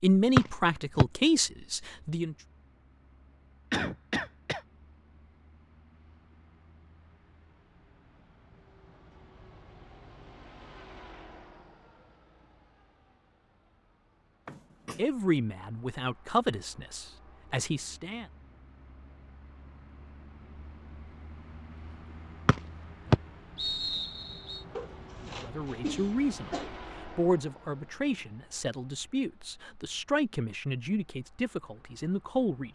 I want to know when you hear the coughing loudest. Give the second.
4 s.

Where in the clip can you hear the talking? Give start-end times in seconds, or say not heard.
0.0-2.4, 14.9-18.2, 25.2-32.7.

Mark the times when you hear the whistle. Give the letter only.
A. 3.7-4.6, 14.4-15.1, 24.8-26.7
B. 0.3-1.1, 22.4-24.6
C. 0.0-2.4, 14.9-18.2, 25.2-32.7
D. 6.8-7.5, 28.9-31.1
B.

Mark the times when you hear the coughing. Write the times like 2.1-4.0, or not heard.
3.7-4.6, 14.4-15.1, 24.8-26.7.